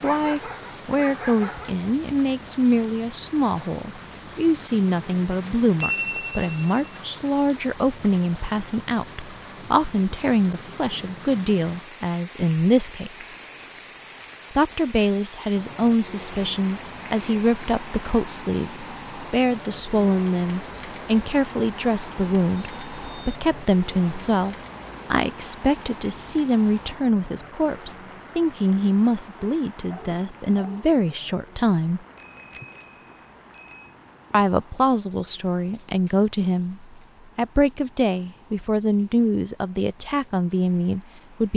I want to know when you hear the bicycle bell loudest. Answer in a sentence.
The volume of the bicycle bell peaks at 6 seconds.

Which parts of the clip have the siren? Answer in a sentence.
The siren can't be heard in this clip.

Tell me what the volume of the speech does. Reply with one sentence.
The volume of the speech stays about the same.